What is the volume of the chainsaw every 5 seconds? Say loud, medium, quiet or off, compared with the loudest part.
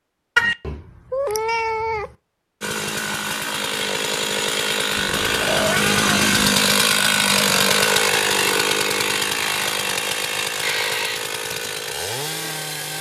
medium, loud, medium.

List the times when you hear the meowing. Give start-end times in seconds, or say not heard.
0.3-2.1, 5.0-6.3, 10.6-11.2.